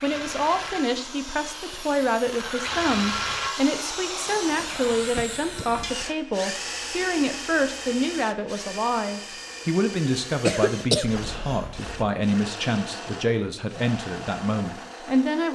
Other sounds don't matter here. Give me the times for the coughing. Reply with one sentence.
The coughing can be heard from 10.3 to 11.7 s.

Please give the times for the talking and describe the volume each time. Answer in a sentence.
The talking can be heard from 0.0 to 15.4 s, at a steady volume.